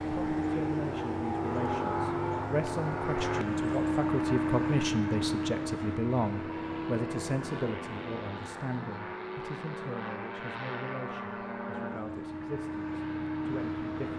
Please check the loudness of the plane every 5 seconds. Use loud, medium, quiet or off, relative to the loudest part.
loud, medium, medium.